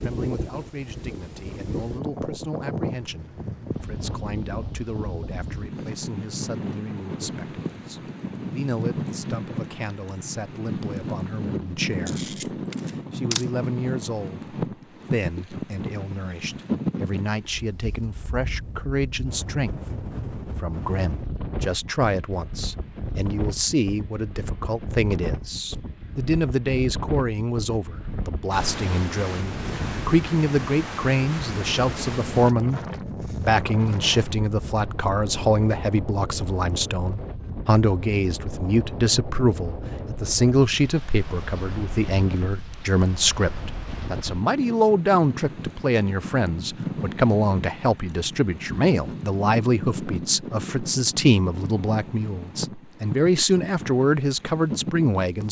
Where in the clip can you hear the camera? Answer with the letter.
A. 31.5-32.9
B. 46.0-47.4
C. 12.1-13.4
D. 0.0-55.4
C.